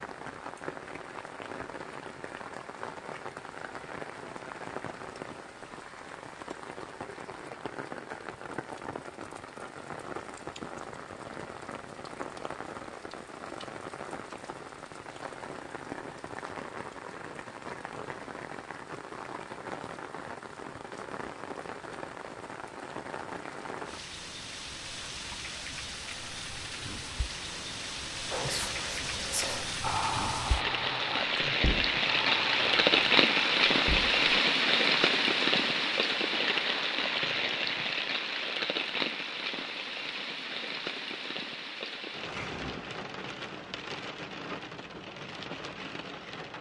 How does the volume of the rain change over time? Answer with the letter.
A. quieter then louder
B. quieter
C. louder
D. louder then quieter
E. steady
D.